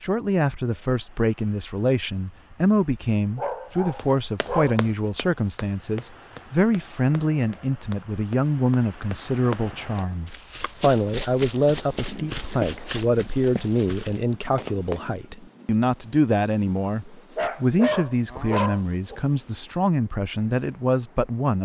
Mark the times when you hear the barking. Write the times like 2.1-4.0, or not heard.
3.4-4.8, 17.4-19.2.